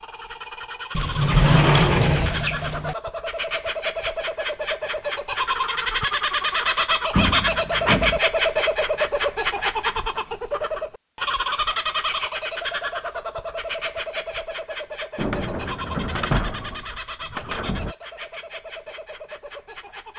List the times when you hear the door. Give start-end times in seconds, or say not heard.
0.9-3.0, 7.1-8.2, 15.2-17.9.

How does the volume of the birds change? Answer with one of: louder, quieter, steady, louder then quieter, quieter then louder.
louder then quieter.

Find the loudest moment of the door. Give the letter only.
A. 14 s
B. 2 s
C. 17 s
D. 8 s
B.